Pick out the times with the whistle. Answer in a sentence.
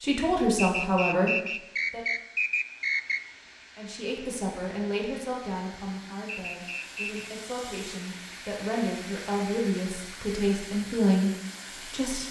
The whistle can be heard from 0.6 to 3.2 s and from 6.2 to 7.3 s.